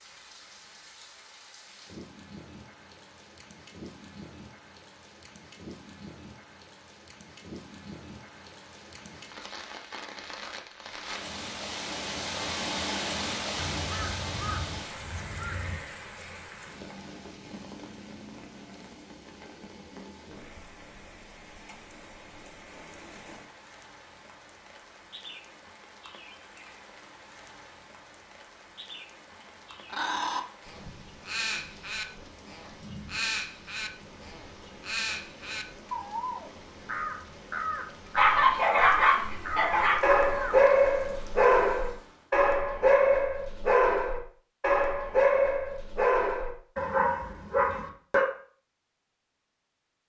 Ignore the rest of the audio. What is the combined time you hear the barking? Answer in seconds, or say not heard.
10 s.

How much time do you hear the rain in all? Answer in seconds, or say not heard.
42 s.